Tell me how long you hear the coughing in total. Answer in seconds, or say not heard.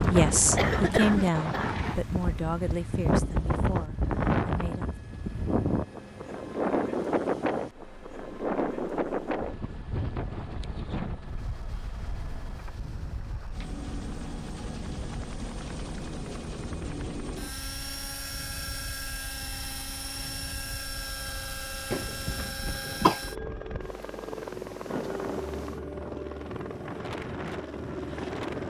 3 s.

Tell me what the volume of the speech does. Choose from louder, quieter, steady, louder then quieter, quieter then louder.
quieter.